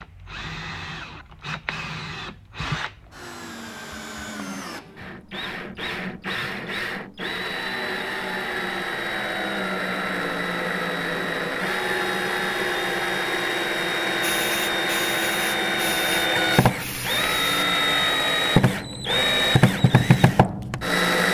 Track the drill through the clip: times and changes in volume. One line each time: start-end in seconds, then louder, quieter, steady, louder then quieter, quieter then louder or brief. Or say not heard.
0.0-21.2 louder.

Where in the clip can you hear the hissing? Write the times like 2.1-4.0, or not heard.
14.2-17.6.